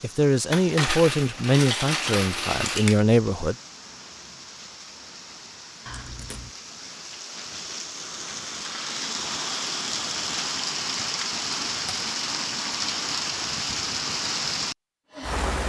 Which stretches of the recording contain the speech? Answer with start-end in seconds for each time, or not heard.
0.0-3.5.